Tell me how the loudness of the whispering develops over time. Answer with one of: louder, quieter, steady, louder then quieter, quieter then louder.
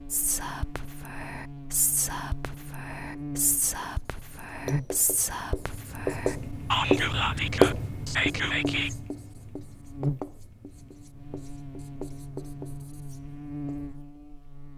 louder.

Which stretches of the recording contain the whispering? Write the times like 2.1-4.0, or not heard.
0.1-8.9.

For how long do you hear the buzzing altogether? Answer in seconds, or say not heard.
15 s.